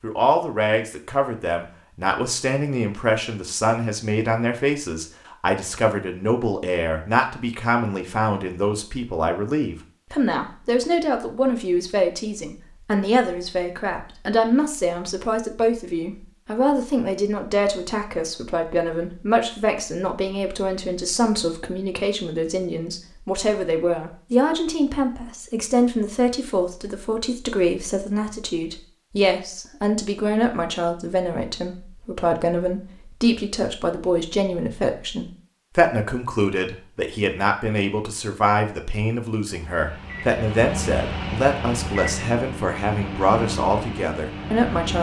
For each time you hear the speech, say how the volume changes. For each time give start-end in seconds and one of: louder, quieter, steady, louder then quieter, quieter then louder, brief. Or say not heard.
0.0-44.9 steady.